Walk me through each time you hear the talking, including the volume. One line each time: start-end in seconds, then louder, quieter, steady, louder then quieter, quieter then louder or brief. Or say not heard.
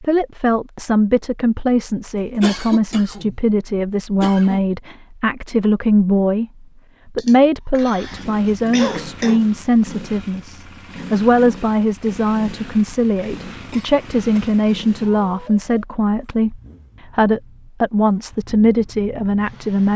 0.0-6.5 steady
7.0-19.9 steady.